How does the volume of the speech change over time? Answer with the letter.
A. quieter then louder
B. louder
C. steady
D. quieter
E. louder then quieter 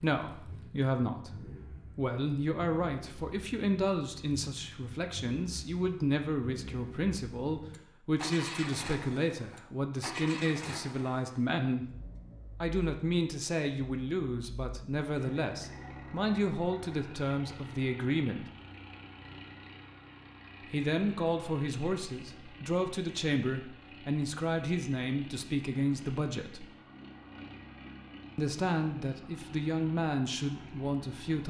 C.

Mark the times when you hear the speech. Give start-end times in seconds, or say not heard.
0.0-11.8, 12.6-18.4, 20.7-26.6, 28.4-31.4.